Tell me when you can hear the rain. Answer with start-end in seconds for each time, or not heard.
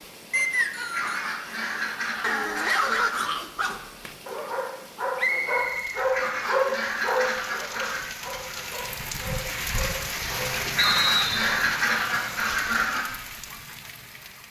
0.0-14.4.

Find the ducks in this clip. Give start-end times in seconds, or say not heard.
0.9-3.3, 6.1-8.1, 10.8-13.1.